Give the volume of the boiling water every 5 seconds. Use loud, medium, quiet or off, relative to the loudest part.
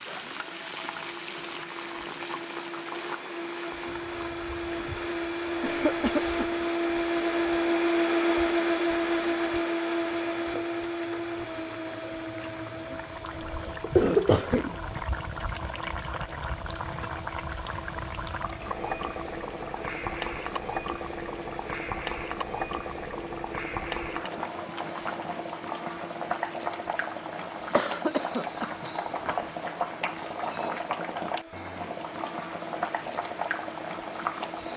medium, quiet, medium, loud, loud, loud, loud.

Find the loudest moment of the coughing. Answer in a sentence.
The volume of the coughing peaks at 14 seconds.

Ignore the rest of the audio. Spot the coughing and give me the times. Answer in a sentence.
You can hear the coughing from 5.6 to 6.5 s, from 13.3 to 15.0 s and from 27.7 to 29.6 s.